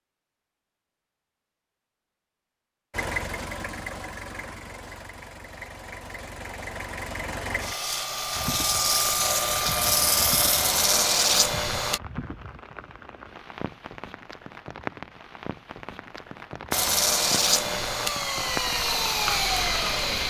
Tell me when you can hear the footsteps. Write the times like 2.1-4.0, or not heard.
not heard.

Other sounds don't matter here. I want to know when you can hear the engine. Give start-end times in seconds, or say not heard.
2.9-12.0, 16.7-20.2.